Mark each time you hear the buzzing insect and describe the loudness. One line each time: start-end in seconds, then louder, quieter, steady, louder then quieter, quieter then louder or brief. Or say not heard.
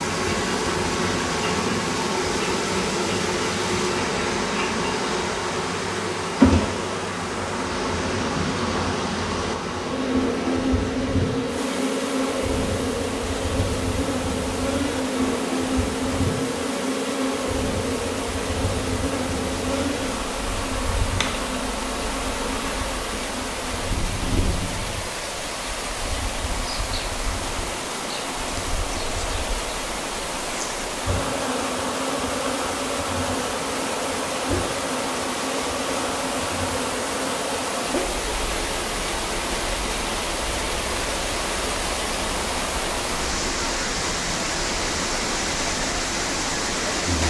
0.0-47.2 quieter.